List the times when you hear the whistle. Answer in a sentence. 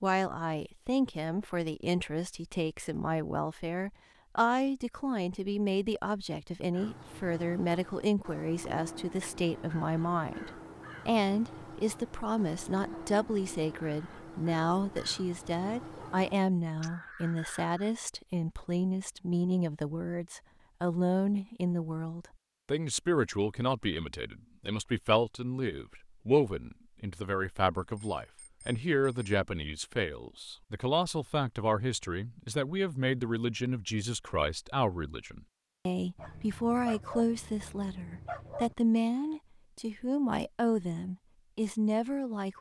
The whistle can't be heard in this clip.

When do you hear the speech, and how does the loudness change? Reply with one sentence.
You can hear the speech from 0.0 to 42.5 s, at a steady volume.